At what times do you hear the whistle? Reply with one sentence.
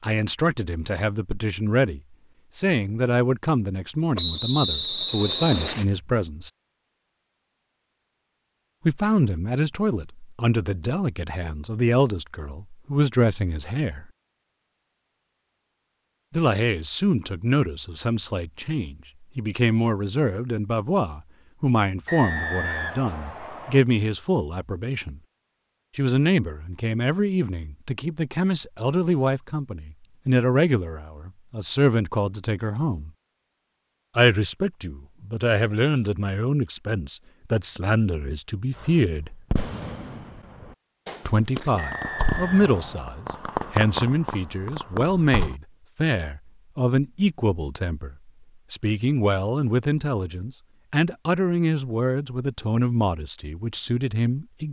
The whistle can be heard from 4.2 to 5.8 s, from 22.1 to 23.8 s and from 41.8 to 43.0 s.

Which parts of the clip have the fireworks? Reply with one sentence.
You can hear the fireworks from 38.8 to 45.5 s.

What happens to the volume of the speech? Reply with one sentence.
The loudness of the speech stays about the same.